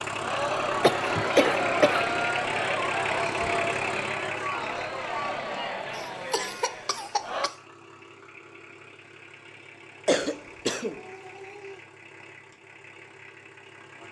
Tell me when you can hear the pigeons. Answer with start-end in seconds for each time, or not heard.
not heard.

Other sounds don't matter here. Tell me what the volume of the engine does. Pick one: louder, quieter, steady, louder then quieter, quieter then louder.
quieter.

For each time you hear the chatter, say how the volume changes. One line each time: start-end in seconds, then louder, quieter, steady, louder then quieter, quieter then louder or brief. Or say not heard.
0.1-7.5 quieter.